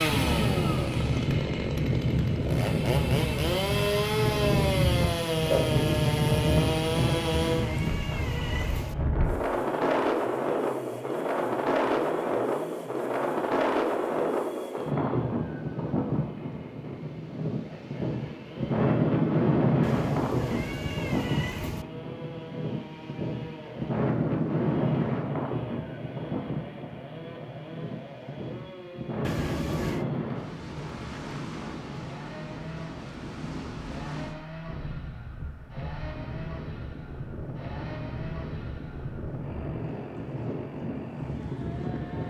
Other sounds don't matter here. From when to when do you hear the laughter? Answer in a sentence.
The laughter can't be heard in this clip.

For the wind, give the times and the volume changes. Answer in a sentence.
You can hear the wind from 0.0 to 42.2 s, getting quieter.